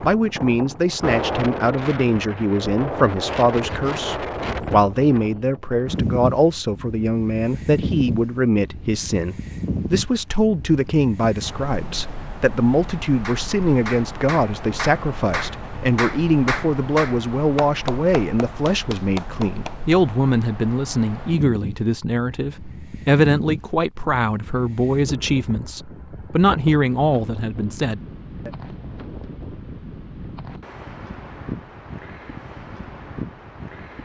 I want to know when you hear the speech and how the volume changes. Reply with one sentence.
You can hear the speech from 0.0 to 28.5 s, at a steady volume.